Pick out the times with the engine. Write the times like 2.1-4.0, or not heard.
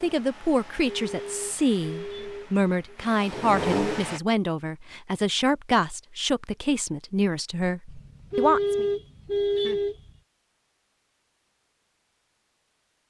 0.0-4.2.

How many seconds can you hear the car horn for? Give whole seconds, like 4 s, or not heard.
5 s.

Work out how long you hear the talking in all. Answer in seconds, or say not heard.
9 s.